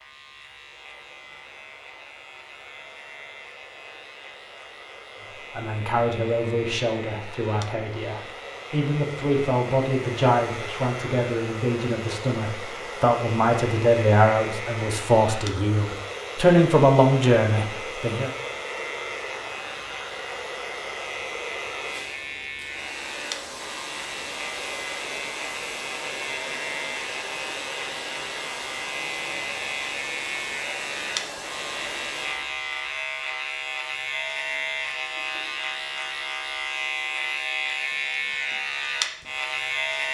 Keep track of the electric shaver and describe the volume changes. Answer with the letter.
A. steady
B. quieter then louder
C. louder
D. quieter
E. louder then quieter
C.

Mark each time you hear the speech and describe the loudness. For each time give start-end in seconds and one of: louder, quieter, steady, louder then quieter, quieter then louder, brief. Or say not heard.
5.5-18.3 louder.